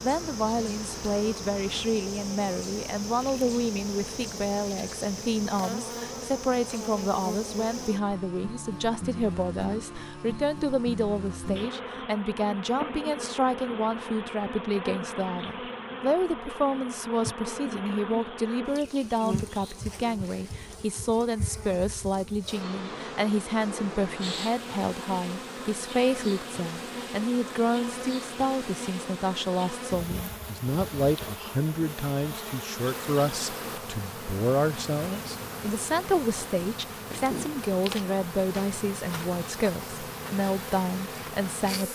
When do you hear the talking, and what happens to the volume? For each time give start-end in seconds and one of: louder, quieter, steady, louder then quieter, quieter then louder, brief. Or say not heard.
0.0-41.8 steady.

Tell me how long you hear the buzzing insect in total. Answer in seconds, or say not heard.
42 s.